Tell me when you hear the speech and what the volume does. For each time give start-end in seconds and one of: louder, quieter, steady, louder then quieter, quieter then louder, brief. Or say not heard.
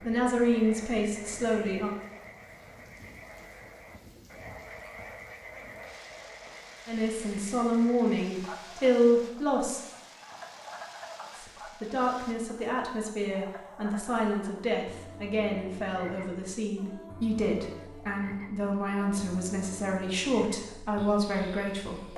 0.0-1.9 brief
6.8-9.8 brief
11.3-22.1 steady.